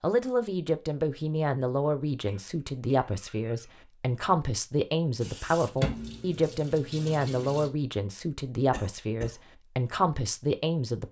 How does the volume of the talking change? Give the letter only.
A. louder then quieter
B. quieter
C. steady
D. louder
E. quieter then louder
C.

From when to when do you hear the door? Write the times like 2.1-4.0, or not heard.
not heard.